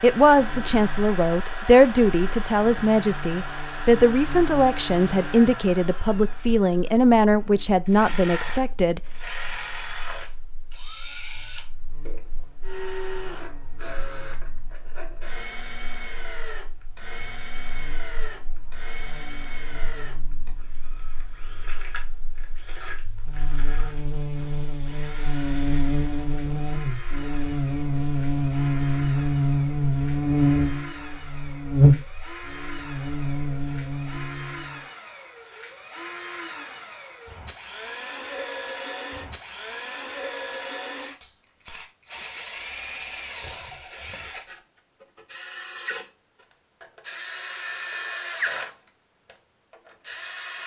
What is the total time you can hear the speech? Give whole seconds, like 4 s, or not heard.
9 s.